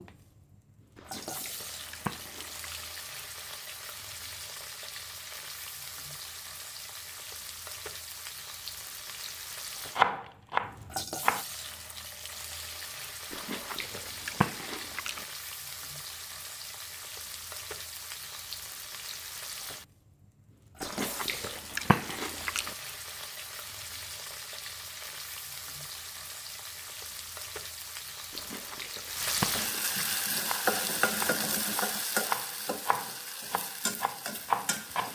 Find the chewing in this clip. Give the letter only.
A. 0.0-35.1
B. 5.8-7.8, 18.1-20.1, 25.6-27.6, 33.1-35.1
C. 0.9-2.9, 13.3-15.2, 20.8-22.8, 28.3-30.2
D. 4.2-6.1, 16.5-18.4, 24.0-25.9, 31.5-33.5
C.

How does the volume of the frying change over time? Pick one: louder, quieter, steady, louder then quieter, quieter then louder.
louder.